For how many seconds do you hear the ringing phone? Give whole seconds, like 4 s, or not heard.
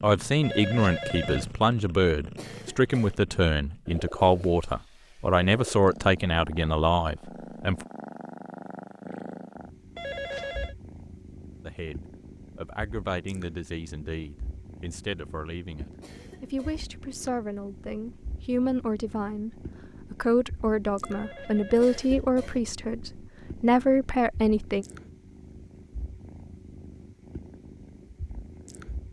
3 s.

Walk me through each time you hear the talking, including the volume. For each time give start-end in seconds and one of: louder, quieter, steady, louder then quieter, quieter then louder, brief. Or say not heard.
0.0-7.8 steady
11.7-24.9 louder.